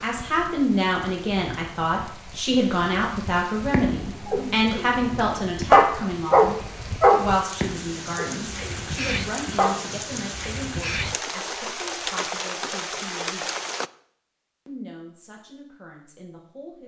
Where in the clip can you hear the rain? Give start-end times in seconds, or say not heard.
0.0-13.9.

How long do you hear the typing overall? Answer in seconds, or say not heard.
not heard.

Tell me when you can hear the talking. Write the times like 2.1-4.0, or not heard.
0.0-13.4, 14.7-16.8.